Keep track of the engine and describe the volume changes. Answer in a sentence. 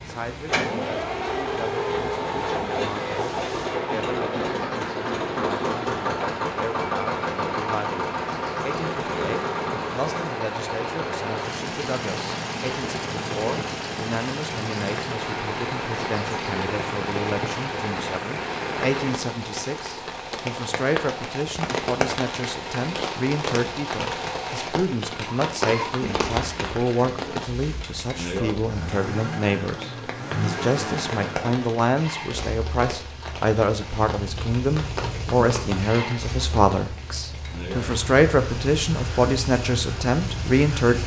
The loudness of the engine goes down.